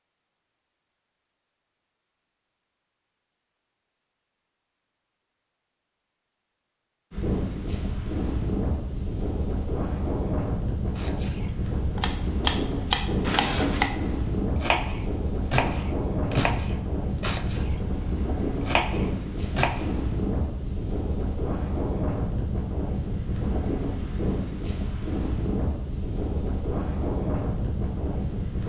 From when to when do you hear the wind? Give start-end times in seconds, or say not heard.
7.1-28.6.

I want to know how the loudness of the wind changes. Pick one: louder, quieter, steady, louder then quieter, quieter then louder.
steady.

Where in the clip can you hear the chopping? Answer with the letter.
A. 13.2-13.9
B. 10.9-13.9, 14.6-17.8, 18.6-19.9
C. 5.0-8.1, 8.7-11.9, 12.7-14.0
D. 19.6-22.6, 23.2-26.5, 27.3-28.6
B.